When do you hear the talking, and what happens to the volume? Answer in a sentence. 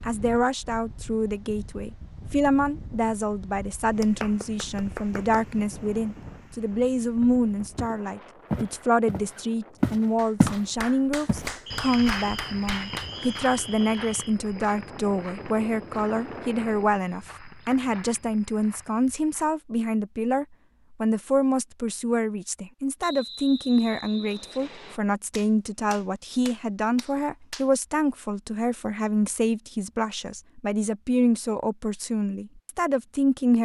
The talking can be heard from 0.1 to 33.5 s, at a steady volume.